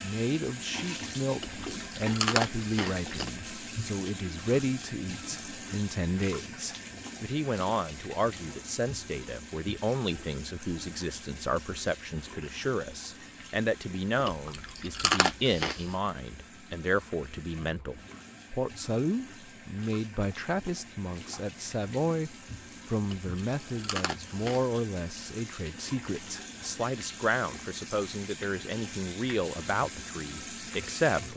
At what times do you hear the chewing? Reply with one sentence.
The chewing can be heard from 1.4 to 3.3 s, from 14.2 to 15.9 s and from 23.0 to 24.7 s.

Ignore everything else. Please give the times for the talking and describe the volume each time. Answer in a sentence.
The talking can be heard from 0.0 to 31.3 s, at a steady volume.